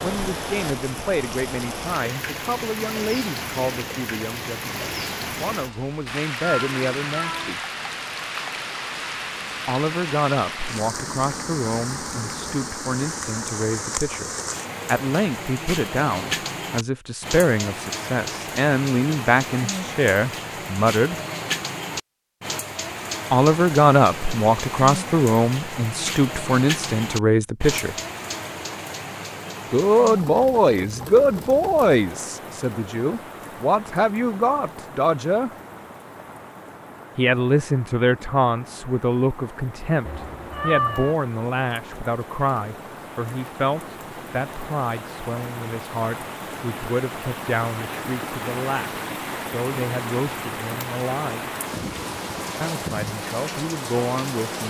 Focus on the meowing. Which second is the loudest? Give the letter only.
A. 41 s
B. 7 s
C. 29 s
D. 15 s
A.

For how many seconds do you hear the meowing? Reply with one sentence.
The meowing can be heard for 2 seconds in total.